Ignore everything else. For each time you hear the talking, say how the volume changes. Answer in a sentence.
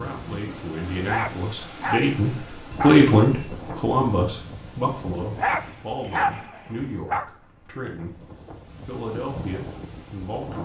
The talking can be heard from 0.0 to 8.2 s, getting louder then quieter; and briefly from 8.8 to 10.5 s.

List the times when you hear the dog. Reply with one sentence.
The dog can be heard from 1.1 to 3.0 s and from 5.3 to 7.2 s.